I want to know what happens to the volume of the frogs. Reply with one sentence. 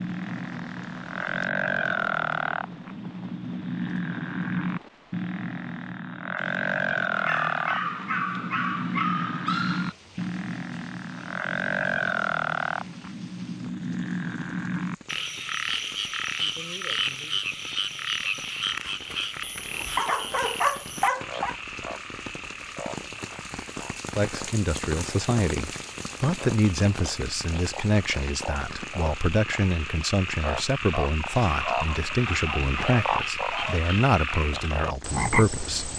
The loudness of the frogs goes down, then up.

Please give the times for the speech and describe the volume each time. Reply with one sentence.
You can hear the speech from 24.1 to 35.9 s, at a steady volume.